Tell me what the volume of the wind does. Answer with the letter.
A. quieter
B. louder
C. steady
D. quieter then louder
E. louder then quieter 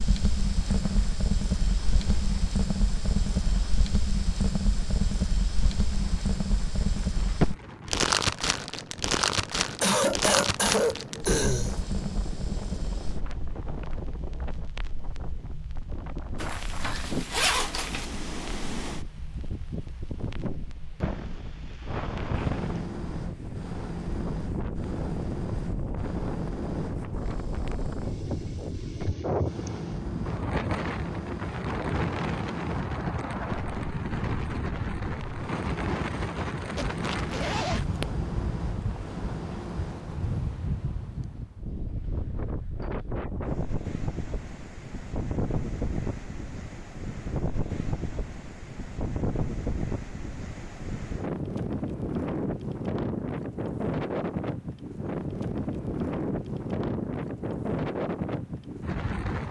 B.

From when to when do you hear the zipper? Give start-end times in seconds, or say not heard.
16.4-18.1, 36.8-38.0.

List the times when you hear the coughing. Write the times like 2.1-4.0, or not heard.
9.8-11.8.